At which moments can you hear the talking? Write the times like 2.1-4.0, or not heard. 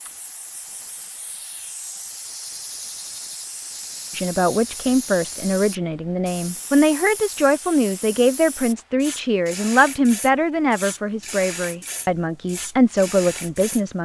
4.2-14.0.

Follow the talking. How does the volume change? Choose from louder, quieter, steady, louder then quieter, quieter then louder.
steady.